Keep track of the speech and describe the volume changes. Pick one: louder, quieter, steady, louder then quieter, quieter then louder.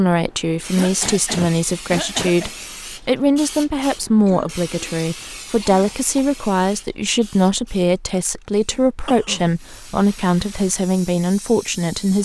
steady.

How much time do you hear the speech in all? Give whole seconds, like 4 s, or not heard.
12 s.